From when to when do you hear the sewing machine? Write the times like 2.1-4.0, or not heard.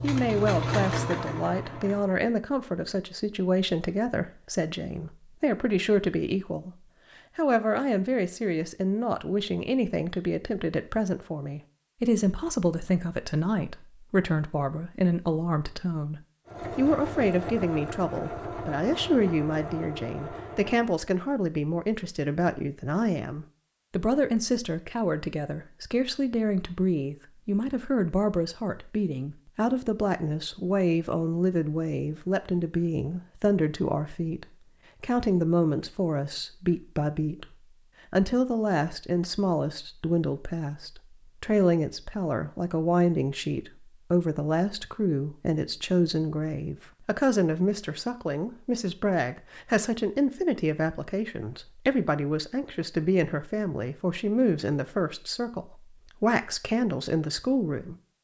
0.0-2.1, 16.4-20.9.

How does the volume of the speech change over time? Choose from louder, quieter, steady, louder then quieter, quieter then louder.
steady.